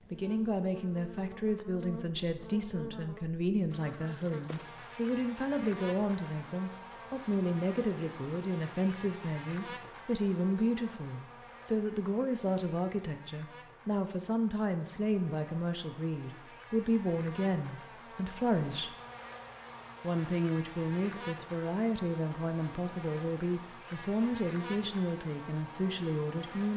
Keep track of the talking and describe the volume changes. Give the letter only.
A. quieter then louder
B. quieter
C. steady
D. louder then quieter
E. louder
C.